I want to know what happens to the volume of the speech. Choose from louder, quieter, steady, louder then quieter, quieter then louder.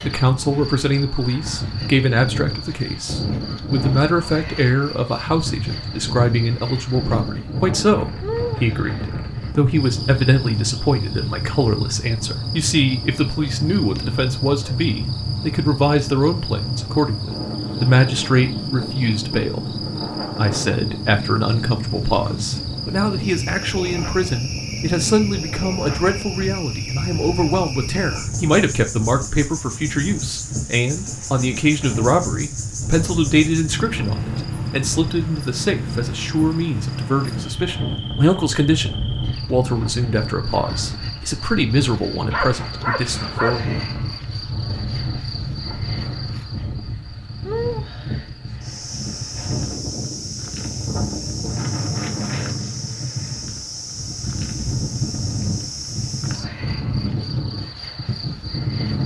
steady.